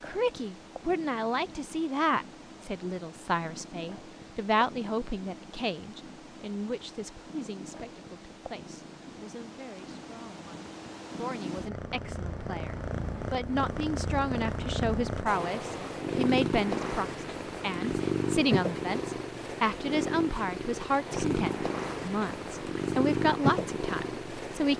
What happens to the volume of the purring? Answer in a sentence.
The volume of the purring goes up.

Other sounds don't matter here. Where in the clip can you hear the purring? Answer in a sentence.
The purring can be heard from 0.0 to 24.7 s.